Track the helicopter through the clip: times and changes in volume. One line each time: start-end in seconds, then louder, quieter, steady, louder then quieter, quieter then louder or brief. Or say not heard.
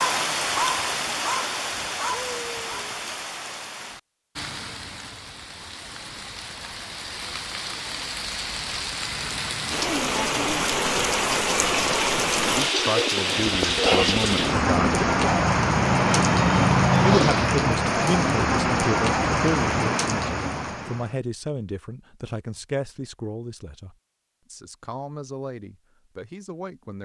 13.2-17.5 louder.